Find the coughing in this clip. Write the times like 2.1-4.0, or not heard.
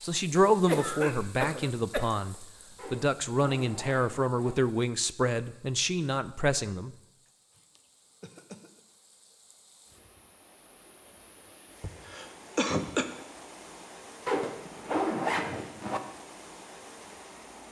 0.6-2.0, 7.5-8.8, 11.8-13.1.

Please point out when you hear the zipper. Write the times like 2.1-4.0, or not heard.
2.8-4.5, 14.2-16.0.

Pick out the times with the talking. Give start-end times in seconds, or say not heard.
0.0-7.0.